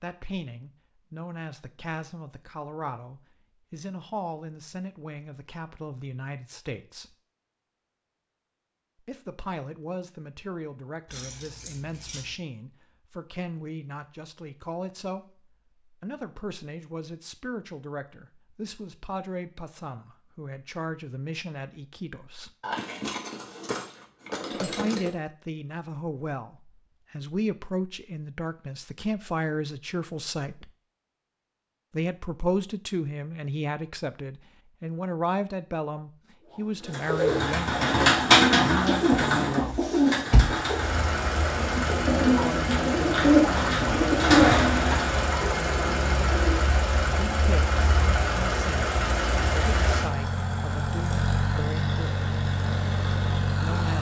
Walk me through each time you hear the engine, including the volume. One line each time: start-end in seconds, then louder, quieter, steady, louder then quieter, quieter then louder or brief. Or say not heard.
40.6-53.9 steady.